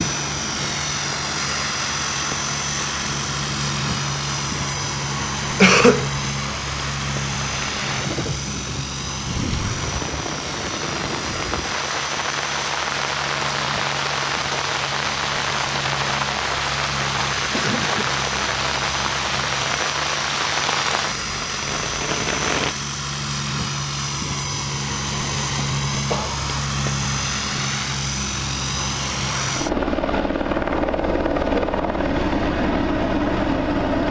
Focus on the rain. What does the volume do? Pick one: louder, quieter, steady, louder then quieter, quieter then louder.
louder.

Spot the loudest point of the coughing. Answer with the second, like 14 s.
6 s.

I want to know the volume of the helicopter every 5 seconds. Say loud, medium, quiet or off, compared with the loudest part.
loud, medium, medium, medium, medium, loud, loud.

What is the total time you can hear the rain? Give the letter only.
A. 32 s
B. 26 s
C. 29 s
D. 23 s
D.